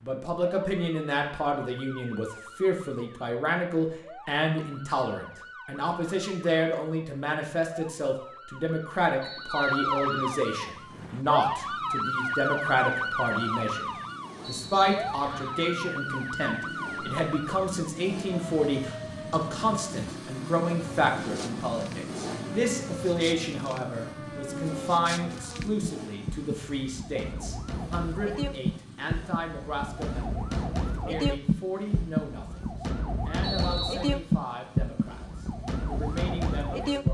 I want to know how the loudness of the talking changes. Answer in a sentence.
The volume of the talking goes down.